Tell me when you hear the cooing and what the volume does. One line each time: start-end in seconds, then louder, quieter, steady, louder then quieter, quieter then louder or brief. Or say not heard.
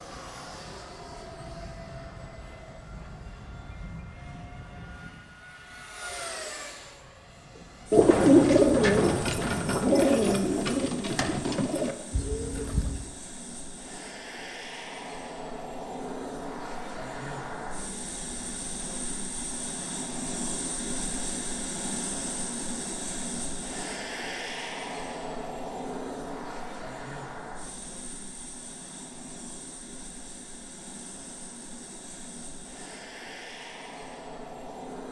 7.9-13.1 quieter.